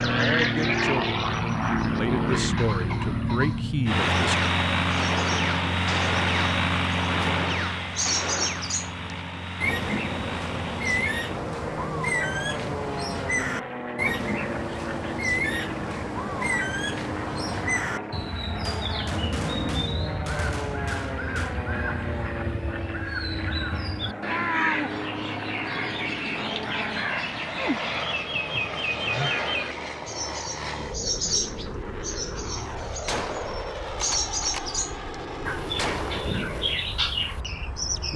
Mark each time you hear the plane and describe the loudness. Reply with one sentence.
You can hear the plane from 0.0 to 38.1 s, getting quieter.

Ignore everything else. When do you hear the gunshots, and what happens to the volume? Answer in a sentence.
The gunshots can be heard from 3.9 to 8.7 s, at a steady volume; briefly from 18.6 to 21.6 s; briefly from 33.0 to 34.6 s; and briefly from 35.8 to 36.3 s.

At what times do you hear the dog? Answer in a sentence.
The dog can't be heard in this clip.